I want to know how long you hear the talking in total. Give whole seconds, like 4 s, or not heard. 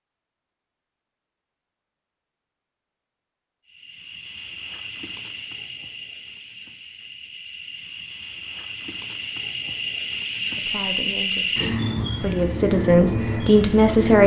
4 s.